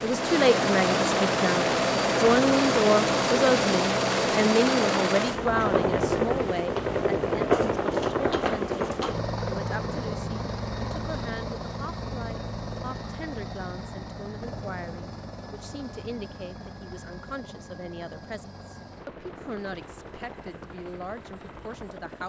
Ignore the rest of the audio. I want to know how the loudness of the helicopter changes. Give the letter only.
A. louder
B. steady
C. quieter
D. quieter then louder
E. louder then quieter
C.